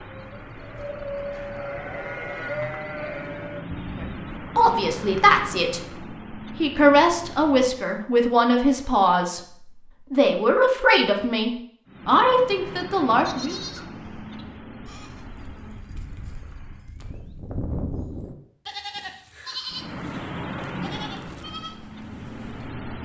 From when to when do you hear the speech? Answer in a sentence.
You can hear the speech from 4.0 to 5.8 s, from 6.5 to 9.4 s and from 10.1 to 13.6 s.